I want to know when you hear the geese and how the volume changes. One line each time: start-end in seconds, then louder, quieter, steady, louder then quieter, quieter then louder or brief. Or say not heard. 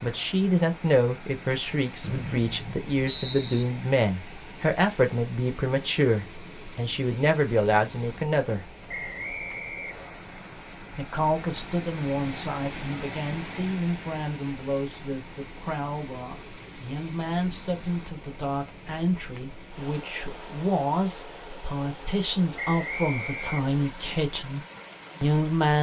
not heard.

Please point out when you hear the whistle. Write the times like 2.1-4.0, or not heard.
2.0-3.6, 8.8-10.2, 22.6-23.8.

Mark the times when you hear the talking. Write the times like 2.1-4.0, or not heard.
0.0-8.7, 10.9-24.6, 25.2-25.7.